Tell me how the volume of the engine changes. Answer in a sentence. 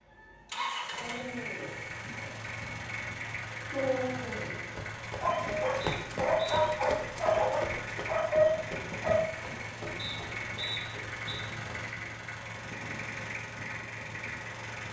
The volume of the engine stays about the same.